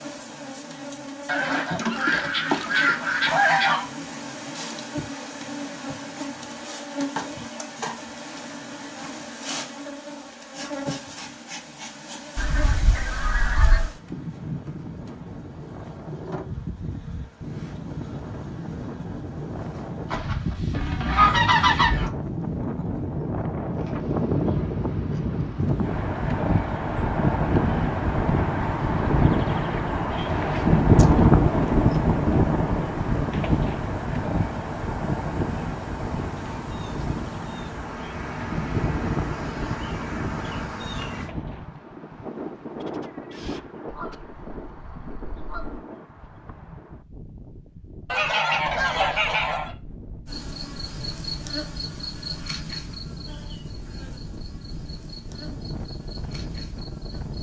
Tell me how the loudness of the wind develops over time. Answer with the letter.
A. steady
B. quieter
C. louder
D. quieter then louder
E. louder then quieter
E.